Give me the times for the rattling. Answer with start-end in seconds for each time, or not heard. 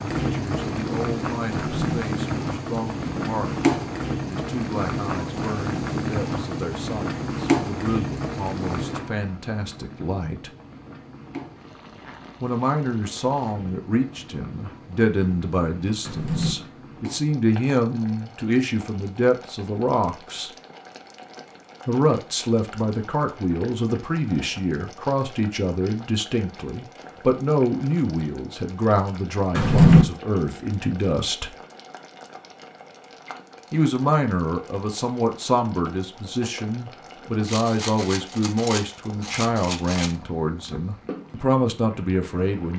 37.5-40.1.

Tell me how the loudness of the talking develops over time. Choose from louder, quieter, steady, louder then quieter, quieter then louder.
louder.